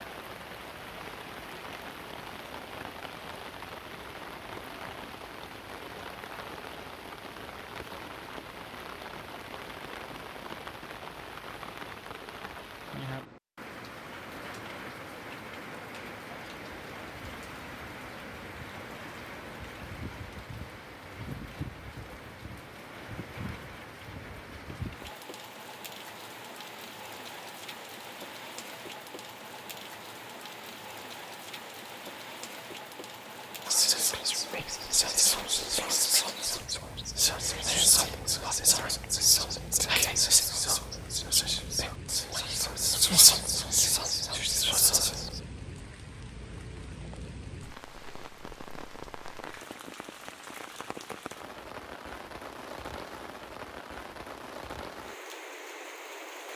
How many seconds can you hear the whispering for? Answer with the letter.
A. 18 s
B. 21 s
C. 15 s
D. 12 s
D.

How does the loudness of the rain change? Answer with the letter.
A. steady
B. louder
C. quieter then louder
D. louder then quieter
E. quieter
A.